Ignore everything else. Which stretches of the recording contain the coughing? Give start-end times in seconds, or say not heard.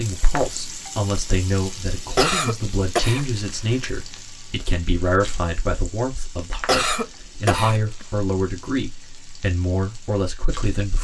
2.1-3.9, 6.7-8.1.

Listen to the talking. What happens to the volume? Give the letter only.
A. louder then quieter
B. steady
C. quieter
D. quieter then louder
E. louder
B.